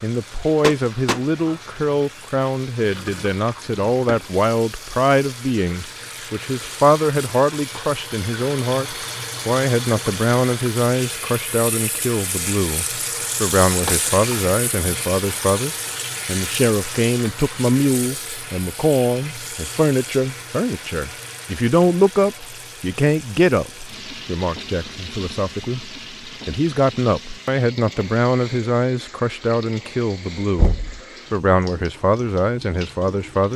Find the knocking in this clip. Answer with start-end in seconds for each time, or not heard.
0.6-1.2, 13.8-14.2, 30.6-31.0.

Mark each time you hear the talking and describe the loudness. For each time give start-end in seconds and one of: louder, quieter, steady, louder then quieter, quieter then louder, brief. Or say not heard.
0.0-33.5 steady.